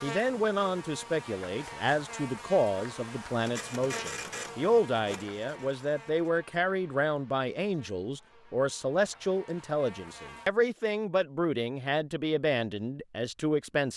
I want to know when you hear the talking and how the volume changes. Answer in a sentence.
You can hear the talking from 0.0 to 13.9 s, at a steady volume.